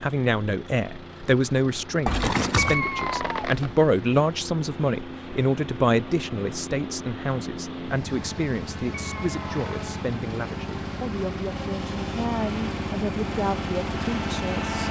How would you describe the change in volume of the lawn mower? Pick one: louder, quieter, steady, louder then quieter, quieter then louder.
louder.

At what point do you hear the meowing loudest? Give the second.
3 s.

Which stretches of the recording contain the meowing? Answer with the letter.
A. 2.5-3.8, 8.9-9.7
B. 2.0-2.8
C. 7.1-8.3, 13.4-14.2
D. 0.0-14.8
A.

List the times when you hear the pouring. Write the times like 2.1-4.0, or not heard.
2.0-2.8.